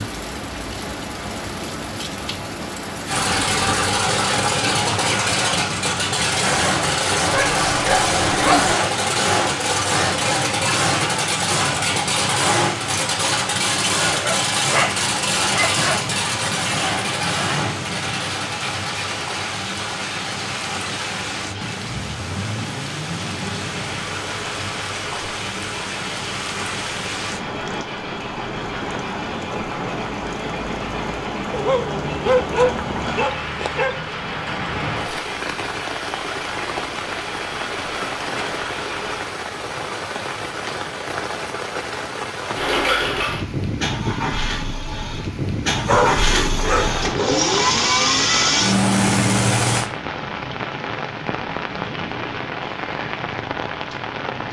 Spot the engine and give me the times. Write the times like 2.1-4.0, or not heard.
3.0-39.2, 42.5-49.9.